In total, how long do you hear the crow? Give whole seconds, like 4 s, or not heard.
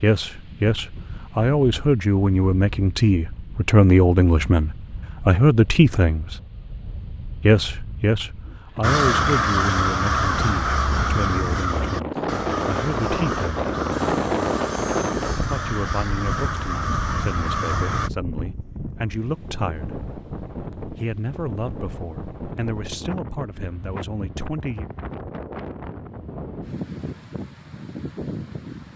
9 s.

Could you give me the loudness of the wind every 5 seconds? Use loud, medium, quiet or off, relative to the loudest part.
quiet, quiet, loud, medium, medium, medium.